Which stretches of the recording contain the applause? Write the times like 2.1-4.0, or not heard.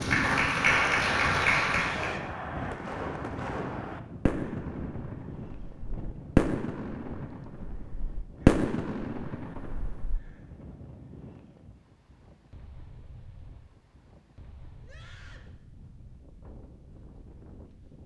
0.0-2.1.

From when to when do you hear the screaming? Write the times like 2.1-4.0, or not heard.
1.9-2.3, 14.8-15.5.